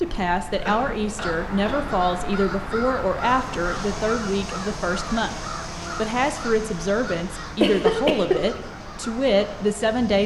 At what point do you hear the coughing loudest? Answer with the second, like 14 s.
8 s.